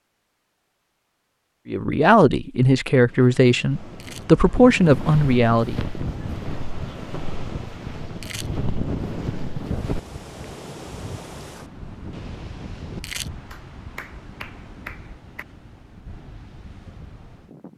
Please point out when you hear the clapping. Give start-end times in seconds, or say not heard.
13.5-15.4.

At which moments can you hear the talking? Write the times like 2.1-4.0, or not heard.
1.6-5.8.